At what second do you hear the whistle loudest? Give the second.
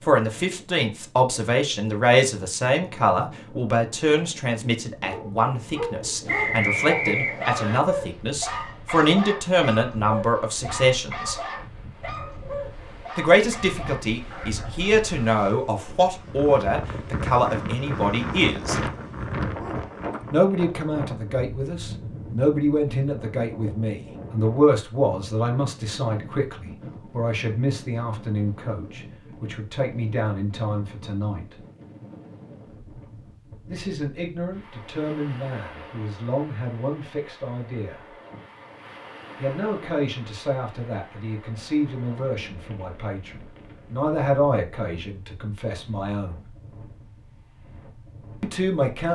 7 s.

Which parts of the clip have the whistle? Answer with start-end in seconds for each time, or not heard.
6.2-7.8.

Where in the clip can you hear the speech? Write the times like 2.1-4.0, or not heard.
0.0-11.4, 13.2-18.8, 20.3-31.6, 33.6-38.0, 39.4-46.5, 48.4-49.1.